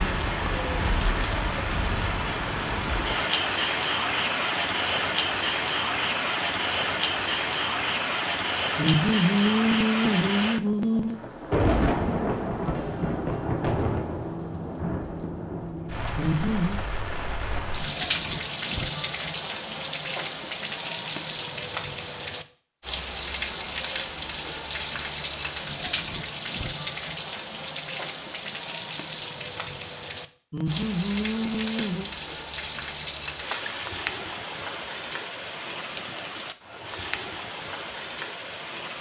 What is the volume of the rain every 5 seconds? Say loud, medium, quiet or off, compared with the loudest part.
loud, loud, loud, medium, medium, medium, medium, medium.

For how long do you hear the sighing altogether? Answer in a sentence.
The sighing can be heard for 5 seconds in total.